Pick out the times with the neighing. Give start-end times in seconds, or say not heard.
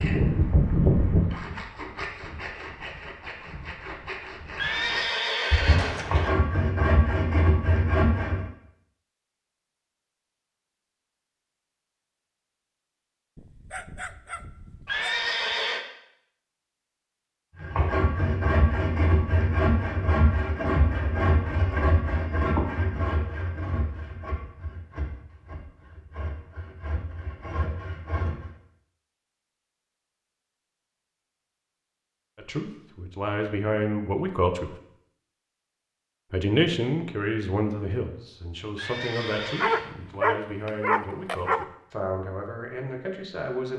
4.5-6.3, 14.8-15.8, 38.8-39.9.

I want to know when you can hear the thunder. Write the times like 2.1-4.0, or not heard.
not heard.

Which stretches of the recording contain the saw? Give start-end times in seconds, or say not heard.
0.0-8.4, 17.6-28.5.